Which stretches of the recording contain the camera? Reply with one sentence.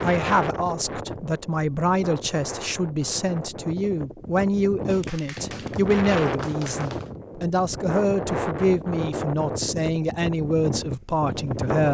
The camera can't be heard in this clip.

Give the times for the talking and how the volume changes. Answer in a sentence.
You can hear the talking from 0.0 to 11.8 s, at a steady volume.